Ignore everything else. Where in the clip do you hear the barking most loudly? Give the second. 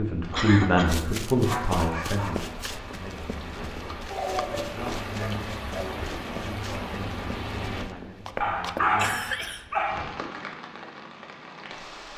9 s.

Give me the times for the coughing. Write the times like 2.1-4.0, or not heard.
0.3-0.9, 8.9-9.7.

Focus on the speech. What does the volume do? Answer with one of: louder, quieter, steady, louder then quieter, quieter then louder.
quieter.